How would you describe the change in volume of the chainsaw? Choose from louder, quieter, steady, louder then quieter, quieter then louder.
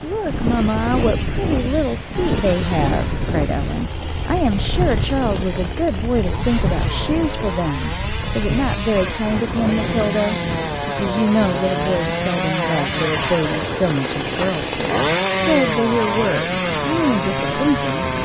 louder.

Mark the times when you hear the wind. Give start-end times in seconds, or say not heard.
0.0-18.2.